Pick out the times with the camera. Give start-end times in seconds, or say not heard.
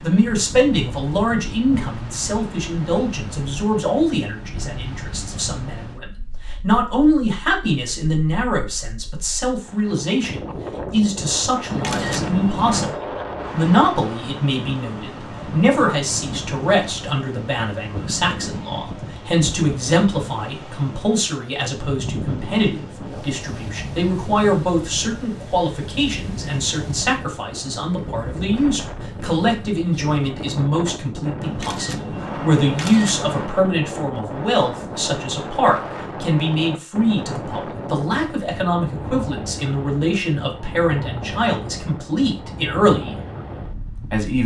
11.7-12.9, 31.4-33.5.